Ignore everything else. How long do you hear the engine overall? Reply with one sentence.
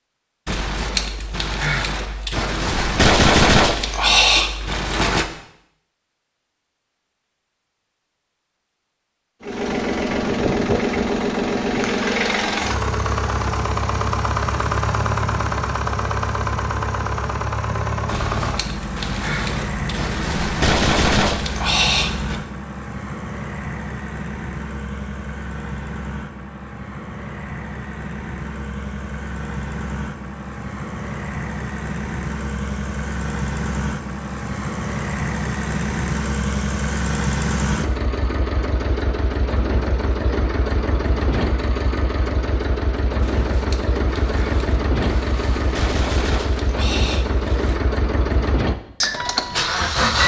You can hear the engine for 41 seconds altogether.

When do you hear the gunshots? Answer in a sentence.
The gunshots can be heard from 0.5 to 5.2 s, from 18.1 to 22.4 s and from 43.2 to 47.8 s.